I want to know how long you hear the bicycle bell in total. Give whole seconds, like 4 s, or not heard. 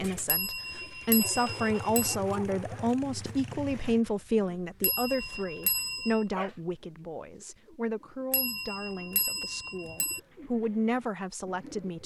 5 s.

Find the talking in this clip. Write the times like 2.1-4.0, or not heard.
0.0-12.0.